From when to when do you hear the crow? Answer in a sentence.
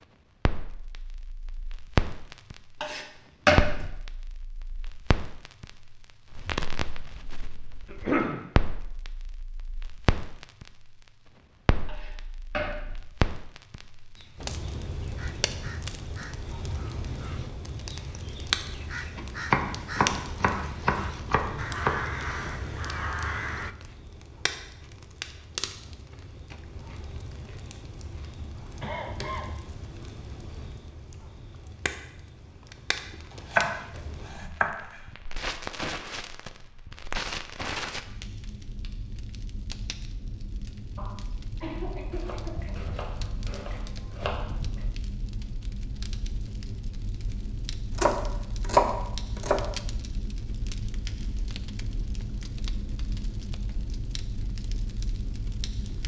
The crow can be heard from 14.2 to 23.8 s.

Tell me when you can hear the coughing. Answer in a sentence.
You can hear the coughing from 7.8 to 8.4 s, from 28.8 to 29.6 s and from 41.0 to 42.8 s.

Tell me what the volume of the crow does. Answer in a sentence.
The loudness of the crow goes up.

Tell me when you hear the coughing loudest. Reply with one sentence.
The volume of the coughing peaks at 8 seconds.